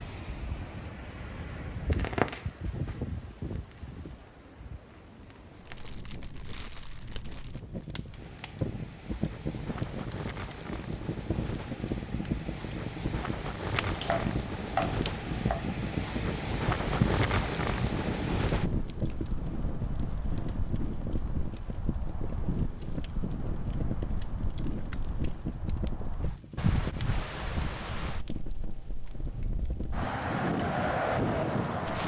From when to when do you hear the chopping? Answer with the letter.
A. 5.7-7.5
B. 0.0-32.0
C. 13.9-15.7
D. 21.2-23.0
C.